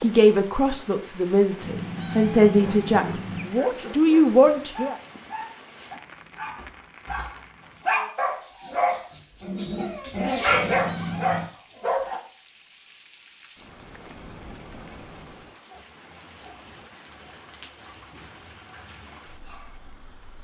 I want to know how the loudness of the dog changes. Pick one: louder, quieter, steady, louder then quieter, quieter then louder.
louder.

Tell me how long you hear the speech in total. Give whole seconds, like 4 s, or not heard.
5 s.